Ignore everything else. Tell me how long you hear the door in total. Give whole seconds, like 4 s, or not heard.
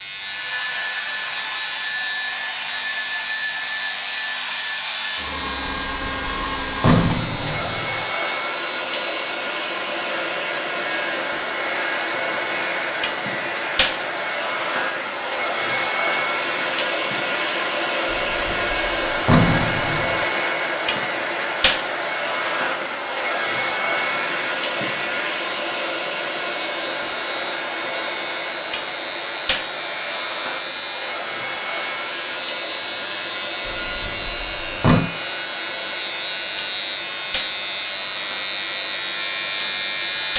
6 s.